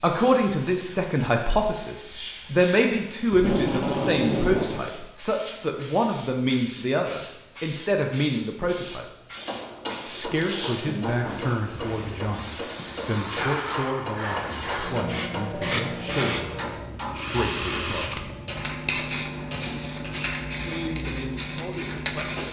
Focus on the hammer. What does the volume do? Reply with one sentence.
The volume of the hammer stays about the same.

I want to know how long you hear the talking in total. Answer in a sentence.
The talking can be heard for 19 seconds in total.